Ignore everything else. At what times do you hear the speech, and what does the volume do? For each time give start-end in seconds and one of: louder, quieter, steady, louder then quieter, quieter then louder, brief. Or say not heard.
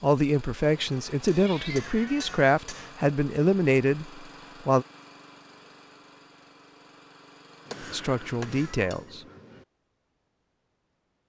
0.0-4.8 steady
7.9-9.2 brief.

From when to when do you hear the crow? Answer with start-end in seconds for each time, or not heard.
not heard.